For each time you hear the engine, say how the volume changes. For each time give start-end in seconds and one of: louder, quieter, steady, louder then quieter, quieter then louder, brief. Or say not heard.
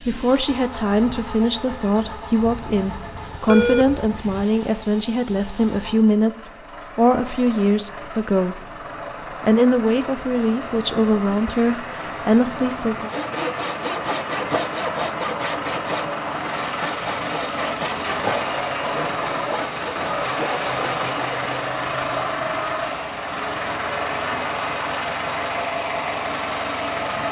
0.0-27.2 louder.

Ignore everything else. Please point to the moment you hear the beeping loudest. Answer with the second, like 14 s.
4 s.